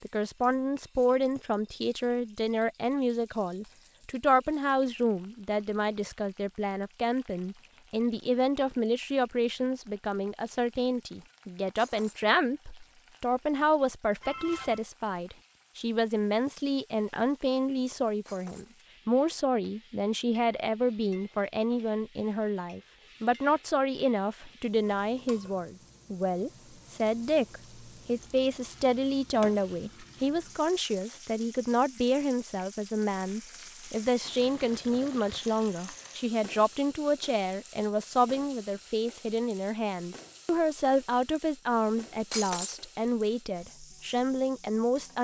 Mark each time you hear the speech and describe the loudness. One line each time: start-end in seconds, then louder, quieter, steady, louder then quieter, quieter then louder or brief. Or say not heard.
0.0-45.1 steady.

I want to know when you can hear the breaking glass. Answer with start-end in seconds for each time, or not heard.
11.8-12.2, 18.2-18.7, 42.3-42.8.